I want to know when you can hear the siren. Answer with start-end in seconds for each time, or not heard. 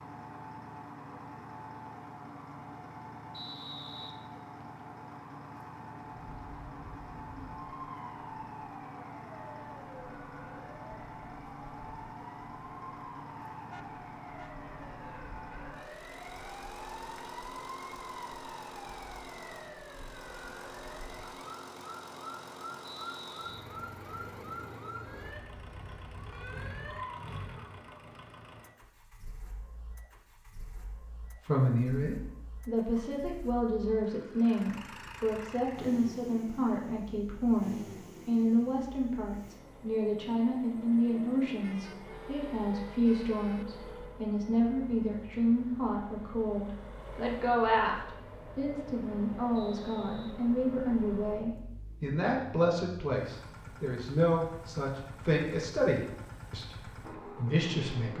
6.2-27.4.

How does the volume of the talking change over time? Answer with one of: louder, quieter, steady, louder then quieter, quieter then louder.
steady.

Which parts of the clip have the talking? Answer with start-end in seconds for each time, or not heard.
31.4-58.1.